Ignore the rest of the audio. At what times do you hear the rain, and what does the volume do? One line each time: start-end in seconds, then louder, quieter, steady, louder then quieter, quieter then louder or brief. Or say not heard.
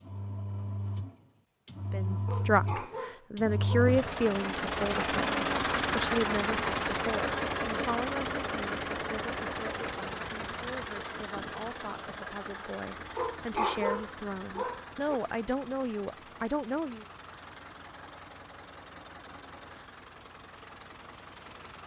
not heard.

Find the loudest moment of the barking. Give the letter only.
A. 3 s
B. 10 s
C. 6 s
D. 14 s
D.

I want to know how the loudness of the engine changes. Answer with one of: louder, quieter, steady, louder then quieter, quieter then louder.
louder then quieter.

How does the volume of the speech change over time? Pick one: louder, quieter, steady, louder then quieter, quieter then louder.
quieter then louder.